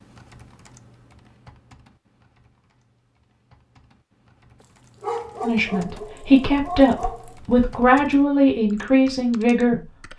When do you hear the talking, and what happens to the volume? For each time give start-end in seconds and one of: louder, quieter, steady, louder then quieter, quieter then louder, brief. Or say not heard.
5.4-9.8 steady.